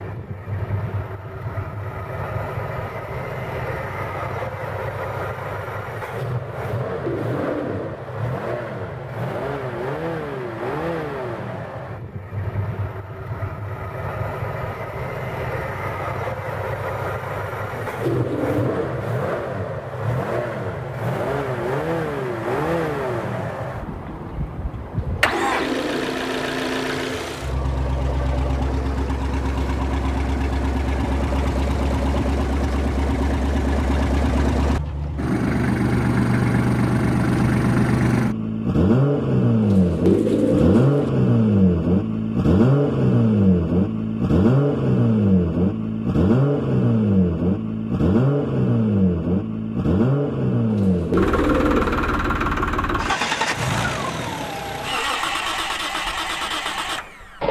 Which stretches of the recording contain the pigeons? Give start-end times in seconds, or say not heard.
6.8-8.1, 17.6-19.1, 24.9-26.2, 39.6-41.1, 50.7-52.1.